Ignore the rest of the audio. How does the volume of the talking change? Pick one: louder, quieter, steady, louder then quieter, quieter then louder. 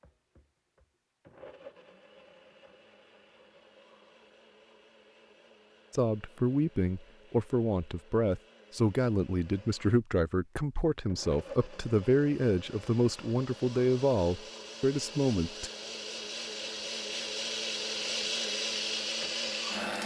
steady.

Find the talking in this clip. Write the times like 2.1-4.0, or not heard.
5.9-15.7.